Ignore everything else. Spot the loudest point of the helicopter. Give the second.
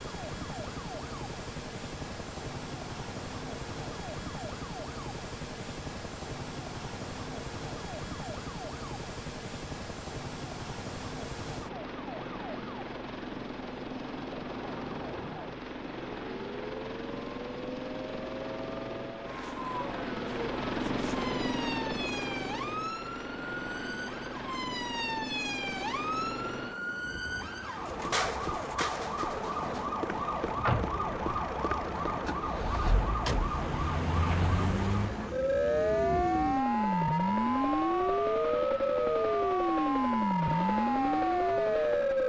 21 s.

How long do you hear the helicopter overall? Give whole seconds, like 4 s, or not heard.
42 s.